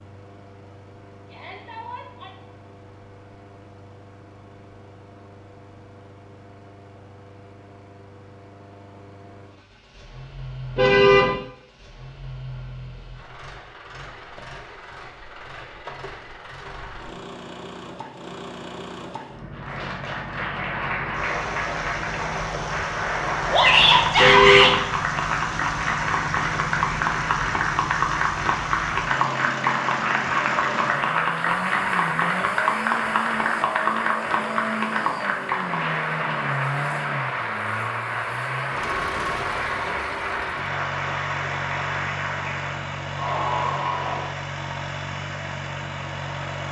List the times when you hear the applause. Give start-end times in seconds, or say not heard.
19.5-44.4.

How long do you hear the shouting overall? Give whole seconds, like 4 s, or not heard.
2 s.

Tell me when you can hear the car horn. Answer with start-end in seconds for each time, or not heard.
10.8-11.3, 24.1-24.8.